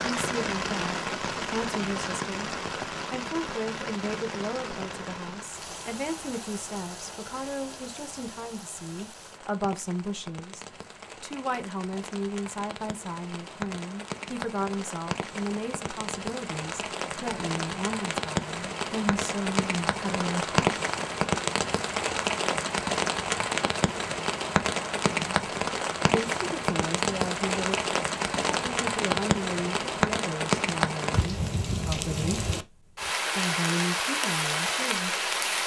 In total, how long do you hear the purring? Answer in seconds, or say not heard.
not heard.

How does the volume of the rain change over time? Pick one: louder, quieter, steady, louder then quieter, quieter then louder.
quieter then louder.